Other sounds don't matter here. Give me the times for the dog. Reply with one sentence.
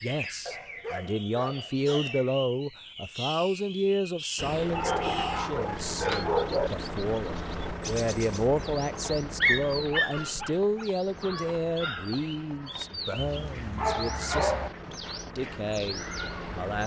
The dog can be heard from 0.5 to 2.1 s, from 4.7 to 6.7 s, from 9.4 to 10.8 s and from 13.2 to 14.7 s.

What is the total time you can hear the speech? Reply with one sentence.
You can hear the speech for 17 seconds altogether.